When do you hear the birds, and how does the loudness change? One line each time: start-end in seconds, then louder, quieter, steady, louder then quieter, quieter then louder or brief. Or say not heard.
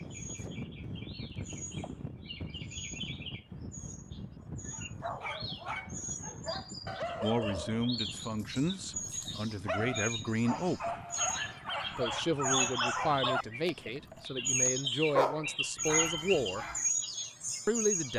0.0-18.1 louder.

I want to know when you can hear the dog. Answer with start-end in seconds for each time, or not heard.
4.7-16.9.